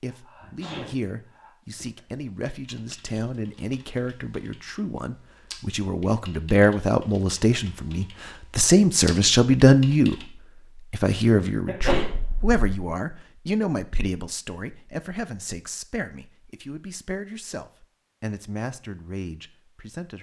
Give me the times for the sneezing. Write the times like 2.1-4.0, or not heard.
0.3-0.9, 11.7-12.6.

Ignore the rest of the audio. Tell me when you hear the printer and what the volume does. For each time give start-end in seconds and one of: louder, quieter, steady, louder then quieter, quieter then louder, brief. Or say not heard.
not heard.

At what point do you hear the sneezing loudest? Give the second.
12 s.